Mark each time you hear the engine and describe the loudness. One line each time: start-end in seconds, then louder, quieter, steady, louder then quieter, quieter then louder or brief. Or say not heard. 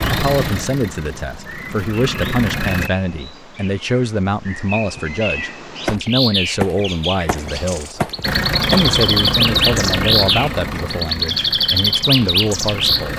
0.0-2.9 brief
8.2-13.1 quieter.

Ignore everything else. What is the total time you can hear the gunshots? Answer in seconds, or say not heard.
3 s.